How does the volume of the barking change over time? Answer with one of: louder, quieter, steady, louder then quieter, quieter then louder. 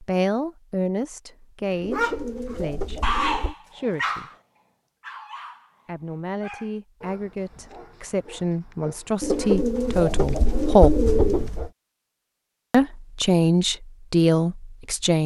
quieter.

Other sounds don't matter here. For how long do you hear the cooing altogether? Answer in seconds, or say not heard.
4 s.